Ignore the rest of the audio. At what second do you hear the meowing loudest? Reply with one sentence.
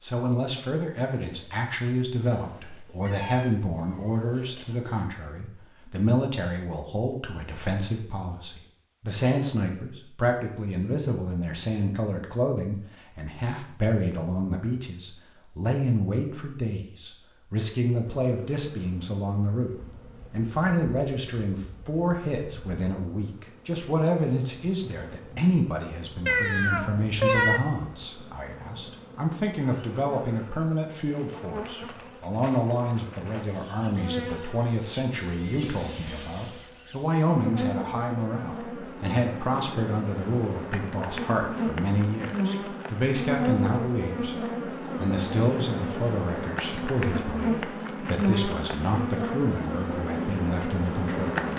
The volume of the meowing peaks at 27 seconds.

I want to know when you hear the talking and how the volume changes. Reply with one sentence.
The talking can be heard from 0.0 to 51.4 s, at a steady volume.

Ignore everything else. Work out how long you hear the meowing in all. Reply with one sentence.
You can hear the meowing for 4 seconds altogether.